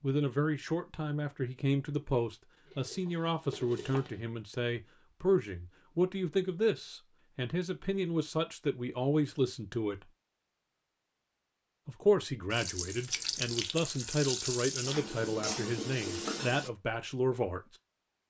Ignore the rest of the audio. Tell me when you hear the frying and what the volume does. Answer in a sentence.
The frying can be heard briefly from 2.6 to 4.2 s; and from 12.5 to 16.7 s, at a steady volume.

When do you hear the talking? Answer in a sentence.
You can hear the talking from 0.0 to 10.1 s and from 11.8 to 17.6 s.